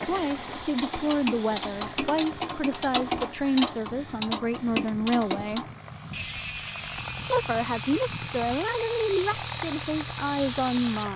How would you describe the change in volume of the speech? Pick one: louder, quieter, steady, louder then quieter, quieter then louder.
steady.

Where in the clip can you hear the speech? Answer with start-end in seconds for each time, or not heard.
0.0-5.7, 7.3-11.1.